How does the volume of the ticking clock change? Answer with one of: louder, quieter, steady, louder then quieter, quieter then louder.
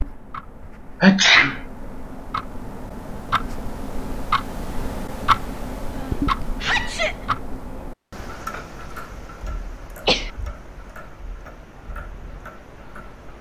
louder then quieter.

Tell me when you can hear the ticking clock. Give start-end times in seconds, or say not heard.
0.0-13.3.